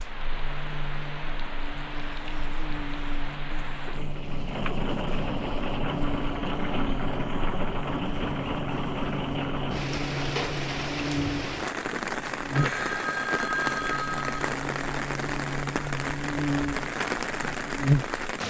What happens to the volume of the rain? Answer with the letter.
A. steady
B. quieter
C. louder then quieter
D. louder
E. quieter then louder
D.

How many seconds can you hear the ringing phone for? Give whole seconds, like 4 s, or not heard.
2 s.